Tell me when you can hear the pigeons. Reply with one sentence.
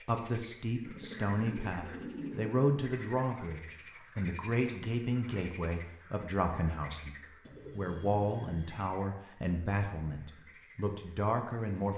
You can hear the pigeons from 0.8 to 2.5 s and from 7.4 to 8.8 s.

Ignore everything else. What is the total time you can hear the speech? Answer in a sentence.
The speech can be heard for 12 seconds in total.